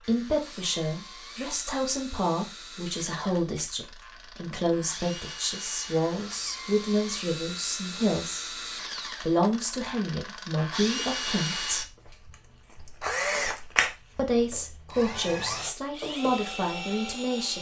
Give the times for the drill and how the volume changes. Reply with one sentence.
The drill can be heard from 0.0 to 17.5 s, getting louder.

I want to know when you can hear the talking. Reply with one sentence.
You can hear the talking from 0.1 to 8.6 s, from 9.2 to 11.9 s and from 14.2 to 17.5 s.